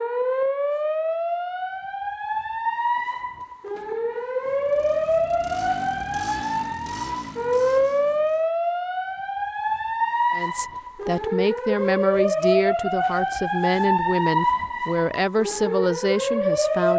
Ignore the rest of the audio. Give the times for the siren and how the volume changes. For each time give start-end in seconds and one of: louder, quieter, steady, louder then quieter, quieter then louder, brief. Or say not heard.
0.0-16.9 steady.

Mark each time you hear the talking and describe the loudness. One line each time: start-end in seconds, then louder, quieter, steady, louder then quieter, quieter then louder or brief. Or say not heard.
10.3-16.9 steady.